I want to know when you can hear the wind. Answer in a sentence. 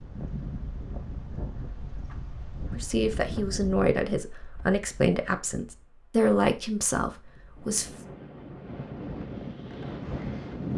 The wind can be heard from 0.0 to 10.7 s.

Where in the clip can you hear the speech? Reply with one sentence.
You can hear the speech from 2.8 to 7.9 s.